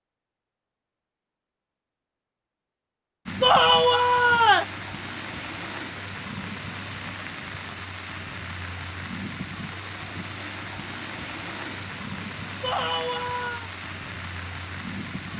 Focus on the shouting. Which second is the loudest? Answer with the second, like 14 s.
4 s.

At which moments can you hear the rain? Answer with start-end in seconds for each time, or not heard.
3.2-15.3.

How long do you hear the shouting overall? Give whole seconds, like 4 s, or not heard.
2 s.